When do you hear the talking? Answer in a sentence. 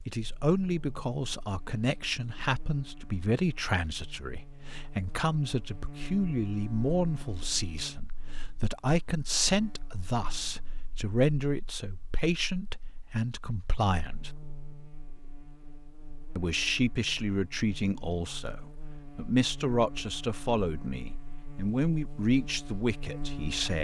You can hear the talking from 0.1 to 14.3 s and from 16.4 to 23.7 s.